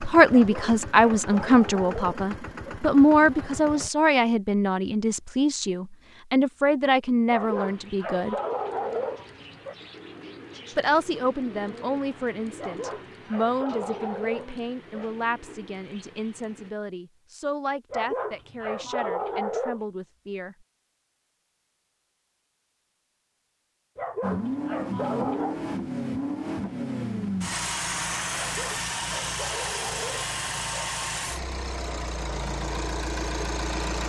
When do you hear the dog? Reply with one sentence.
You can hear the dog from 0.3 to 2.8 s, from 7.3 to 9.8 s, from 12.6 to 15.1 s, from 17.9 to 19.8 s, from 23.9 to 25.6 s and from 28.4 to 30.9 s.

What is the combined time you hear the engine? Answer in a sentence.
You can hear the engine for 14 seconds altogether.